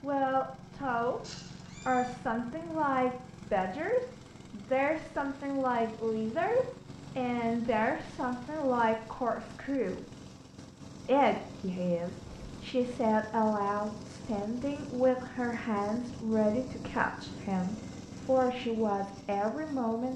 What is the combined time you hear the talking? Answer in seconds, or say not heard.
19 s.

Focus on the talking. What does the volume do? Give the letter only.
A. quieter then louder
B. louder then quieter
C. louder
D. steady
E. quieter
D.